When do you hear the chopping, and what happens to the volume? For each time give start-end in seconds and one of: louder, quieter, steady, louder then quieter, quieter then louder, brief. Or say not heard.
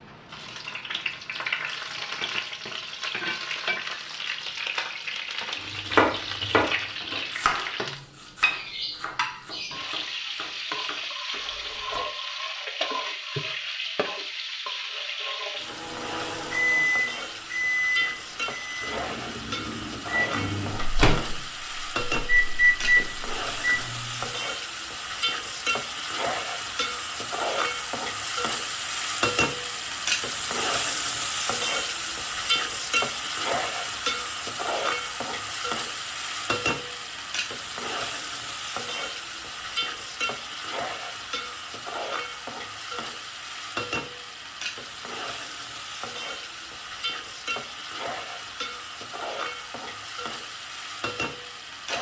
5.8-12.1 quieter.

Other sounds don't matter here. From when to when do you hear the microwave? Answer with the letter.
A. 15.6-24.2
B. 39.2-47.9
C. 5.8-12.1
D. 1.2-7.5
A.